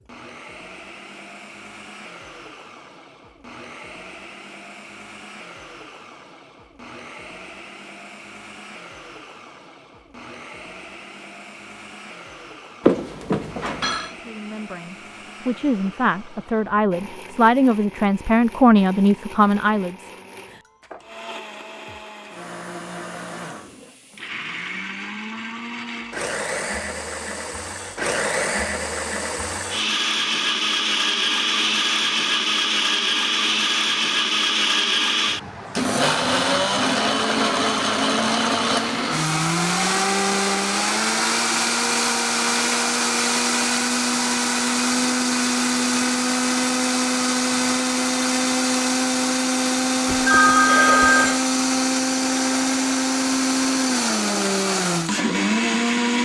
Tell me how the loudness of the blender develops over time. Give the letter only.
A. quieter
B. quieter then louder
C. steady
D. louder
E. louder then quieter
D.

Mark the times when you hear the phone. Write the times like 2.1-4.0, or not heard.
12.8-14.1, 50.0-51.5.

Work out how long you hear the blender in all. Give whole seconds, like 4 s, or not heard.
56 s.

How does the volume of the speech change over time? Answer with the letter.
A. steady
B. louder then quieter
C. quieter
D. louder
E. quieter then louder
D.